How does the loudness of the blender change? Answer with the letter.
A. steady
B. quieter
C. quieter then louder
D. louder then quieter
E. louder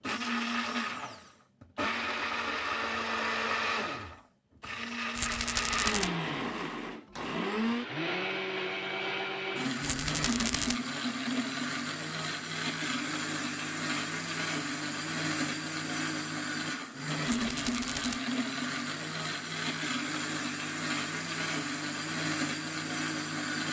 A.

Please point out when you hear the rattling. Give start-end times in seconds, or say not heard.
5.2-6.1, 9.8-10.8, 17.2-18.2.